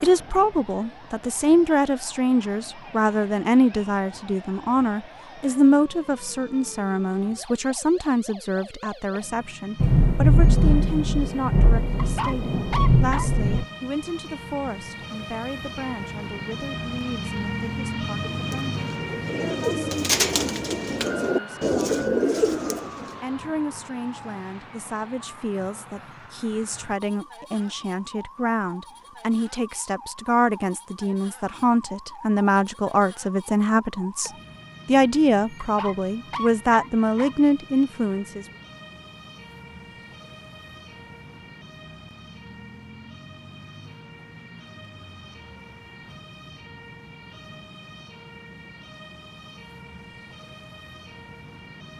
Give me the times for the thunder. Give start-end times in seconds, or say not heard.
9.8-13.7.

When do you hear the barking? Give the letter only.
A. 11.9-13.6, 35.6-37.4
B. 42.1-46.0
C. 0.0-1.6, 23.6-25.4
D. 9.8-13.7
A.